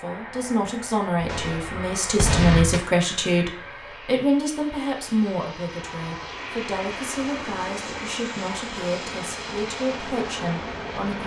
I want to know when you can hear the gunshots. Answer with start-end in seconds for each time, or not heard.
1.2-2.8.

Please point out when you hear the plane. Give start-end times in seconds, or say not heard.
0.0-11.2.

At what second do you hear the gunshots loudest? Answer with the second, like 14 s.
2 s.